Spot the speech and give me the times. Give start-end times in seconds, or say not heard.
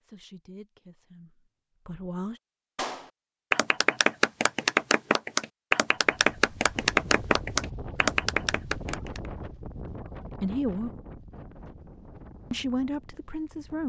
0.0-2.4, 10.4-10.9, 12.5-13.8.